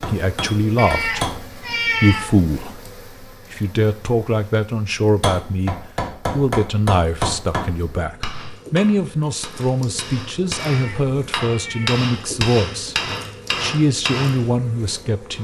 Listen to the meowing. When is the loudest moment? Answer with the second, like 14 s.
2 s.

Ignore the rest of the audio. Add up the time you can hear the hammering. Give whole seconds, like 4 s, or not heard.
11 s.